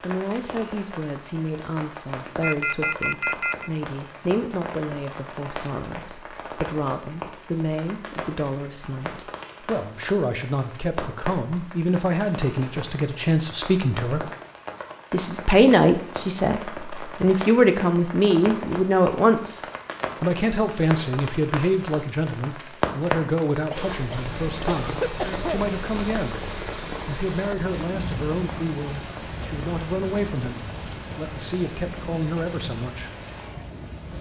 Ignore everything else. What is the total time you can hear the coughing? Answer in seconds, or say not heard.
2 s.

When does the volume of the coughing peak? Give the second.
25 s.